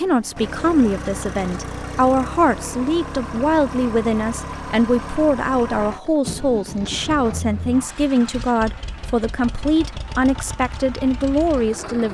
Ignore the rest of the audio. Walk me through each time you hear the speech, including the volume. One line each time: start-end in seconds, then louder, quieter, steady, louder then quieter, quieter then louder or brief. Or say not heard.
0.0-12.0 steady.